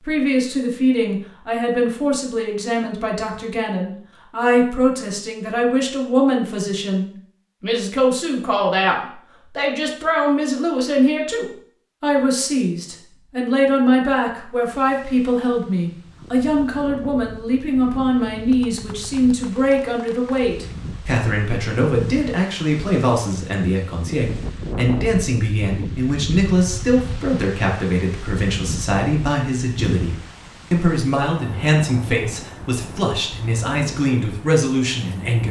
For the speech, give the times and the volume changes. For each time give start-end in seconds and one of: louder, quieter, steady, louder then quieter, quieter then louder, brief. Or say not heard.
0.0-35.4 steady.